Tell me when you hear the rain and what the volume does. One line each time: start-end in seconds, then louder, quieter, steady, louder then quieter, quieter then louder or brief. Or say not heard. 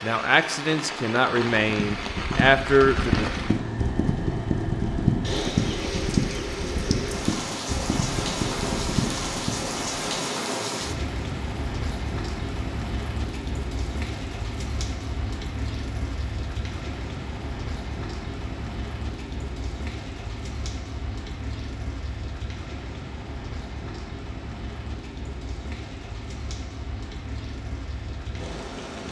0.0-29.0 quieter.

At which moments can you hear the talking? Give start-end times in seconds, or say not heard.
0.0-3.3.